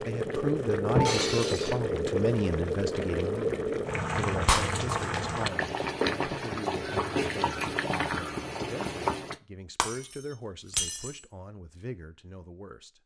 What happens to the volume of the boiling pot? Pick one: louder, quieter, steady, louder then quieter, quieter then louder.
steady.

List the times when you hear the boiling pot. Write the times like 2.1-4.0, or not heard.
0.0-9.4.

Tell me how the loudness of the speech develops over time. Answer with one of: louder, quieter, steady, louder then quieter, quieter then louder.
quieter.